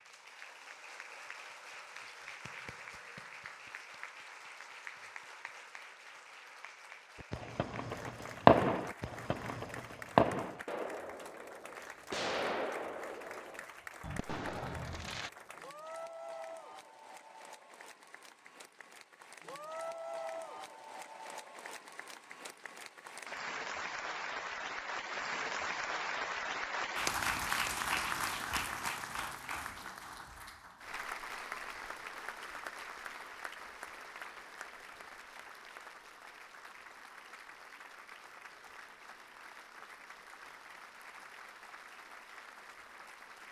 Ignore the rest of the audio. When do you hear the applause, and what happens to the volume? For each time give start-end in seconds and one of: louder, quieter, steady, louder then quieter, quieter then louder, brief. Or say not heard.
0.0-43.4 louder then quieter.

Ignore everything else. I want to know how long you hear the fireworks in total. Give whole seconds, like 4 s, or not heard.
8 s.